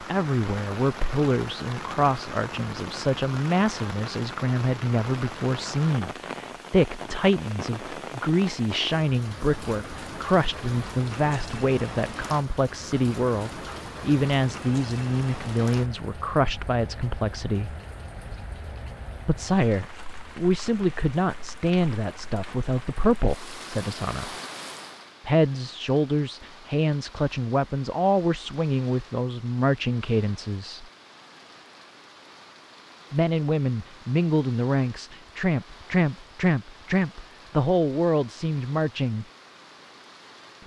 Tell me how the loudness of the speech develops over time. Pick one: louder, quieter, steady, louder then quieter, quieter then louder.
steady.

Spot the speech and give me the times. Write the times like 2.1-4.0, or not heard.
0.0-17.7, 19.2-24.4, 25.2-30.9, 33.1-39.2.